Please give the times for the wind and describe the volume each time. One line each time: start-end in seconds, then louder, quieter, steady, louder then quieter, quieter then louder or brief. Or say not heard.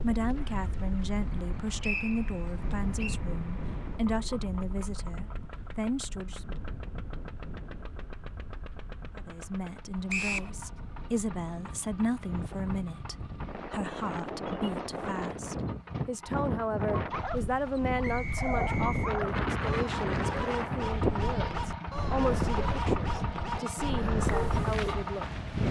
0.0-25.6 quieter then louder.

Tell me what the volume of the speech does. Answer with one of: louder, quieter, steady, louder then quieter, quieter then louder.
steady.